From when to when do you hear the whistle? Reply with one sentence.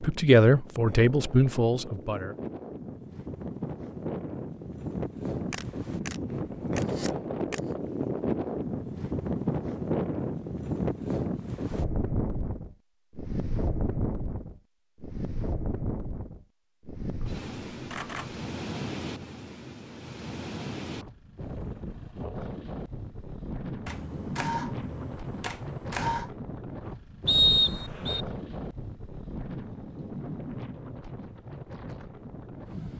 The whistle can be heard from 27.2 to 28.2 s.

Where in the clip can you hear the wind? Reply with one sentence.
You can hear the wind from 0.0 to 32.9 s.